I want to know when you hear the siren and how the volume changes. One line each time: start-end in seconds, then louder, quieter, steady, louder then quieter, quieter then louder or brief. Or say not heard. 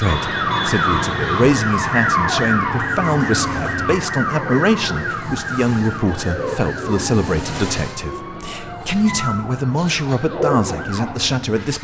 0.0-11.7 quieter.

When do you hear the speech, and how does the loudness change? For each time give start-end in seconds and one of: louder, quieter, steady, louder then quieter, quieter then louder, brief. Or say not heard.
0.0-11.7 steady.